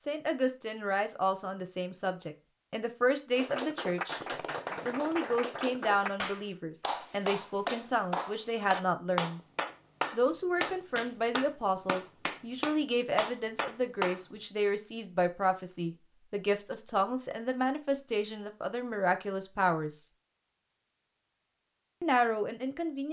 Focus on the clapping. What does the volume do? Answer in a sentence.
The volume of the clapping stays about the same.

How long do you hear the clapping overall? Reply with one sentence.
The clapping can be heard for 11 seconds in total.